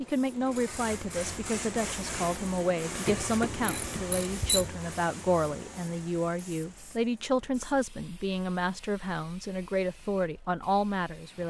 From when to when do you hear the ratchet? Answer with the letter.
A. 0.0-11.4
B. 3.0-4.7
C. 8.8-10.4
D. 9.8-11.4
B.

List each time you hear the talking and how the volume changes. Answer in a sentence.
You can hear the talking from 0.0 to 11.4 s, at a steady volume.